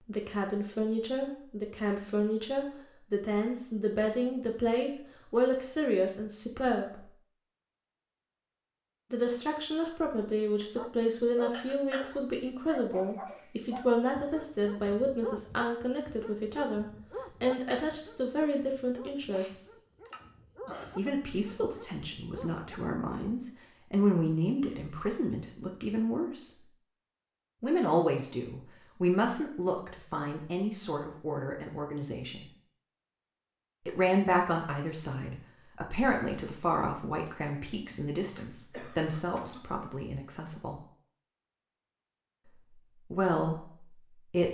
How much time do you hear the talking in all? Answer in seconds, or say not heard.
37 s.